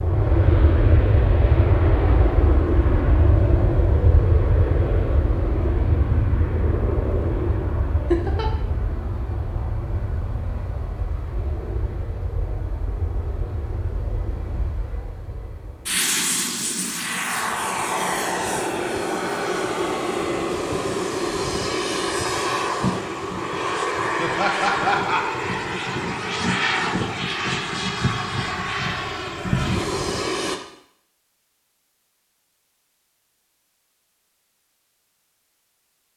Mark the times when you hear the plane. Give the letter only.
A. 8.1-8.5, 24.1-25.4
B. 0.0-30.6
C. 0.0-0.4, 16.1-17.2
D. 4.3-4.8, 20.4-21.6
B.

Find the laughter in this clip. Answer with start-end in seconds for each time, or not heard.
8.1-8.5, 24.1-25.4.